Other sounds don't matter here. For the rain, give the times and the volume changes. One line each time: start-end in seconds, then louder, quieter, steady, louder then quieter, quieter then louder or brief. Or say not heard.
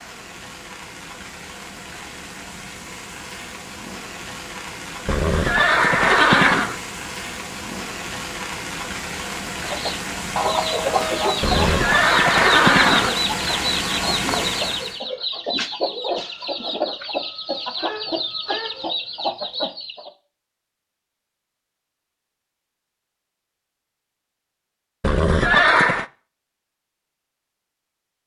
0.0-15.0 louder.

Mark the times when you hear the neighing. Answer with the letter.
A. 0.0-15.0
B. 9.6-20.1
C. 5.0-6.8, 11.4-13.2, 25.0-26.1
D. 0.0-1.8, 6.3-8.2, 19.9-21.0
C.